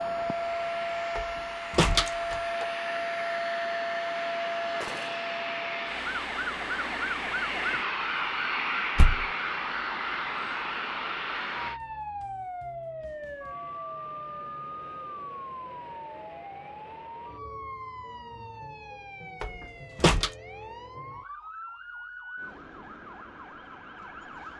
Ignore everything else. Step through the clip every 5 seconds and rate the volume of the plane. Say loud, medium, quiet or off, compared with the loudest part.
loud, loud, loud, off, off.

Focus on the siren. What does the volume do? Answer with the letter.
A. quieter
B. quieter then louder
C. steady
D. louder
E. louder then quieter
A.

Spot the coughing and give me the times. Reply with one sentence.
You can't hear the coughing here.